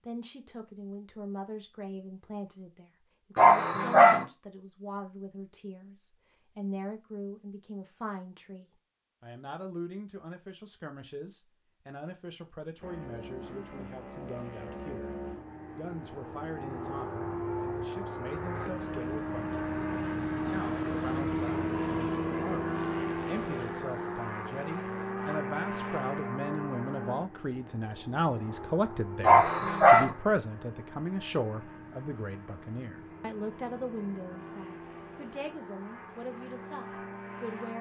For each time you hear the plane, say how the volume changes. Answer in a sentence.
The plane can be heard from 12.8 to 37.7 s, getting louder then quieter.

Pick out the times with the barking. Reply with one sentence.
You can hear the barking from 3.4 to 4.2 s and from 29.2 to 30.1 s.